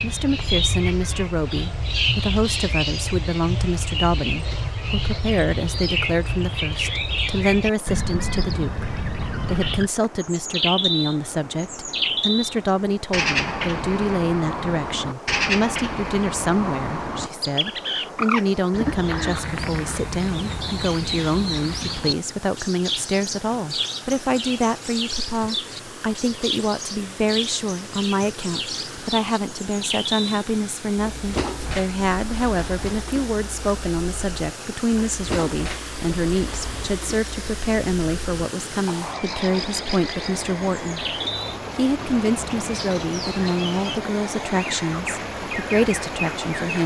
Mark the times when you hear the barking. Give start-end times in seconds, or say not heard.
not heard.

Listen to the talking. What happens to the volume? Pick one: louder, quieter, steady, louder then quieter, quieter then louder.
steady.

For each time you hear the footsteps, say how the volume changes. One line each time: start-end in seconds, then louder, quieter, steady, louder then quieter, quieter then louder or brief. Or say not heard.
not heard.